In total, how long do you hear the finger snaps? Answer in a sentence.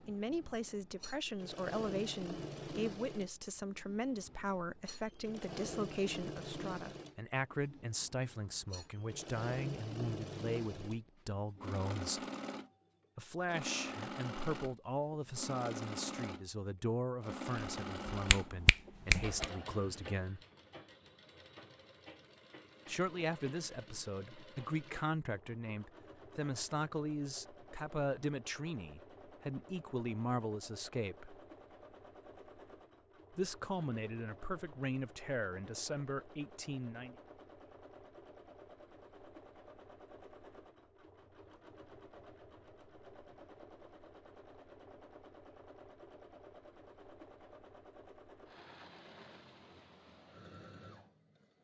You can hear the finger snaps for 2 seconds altogether.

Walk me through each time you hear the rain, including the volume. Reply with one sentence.
The rain can't be heard in this clip.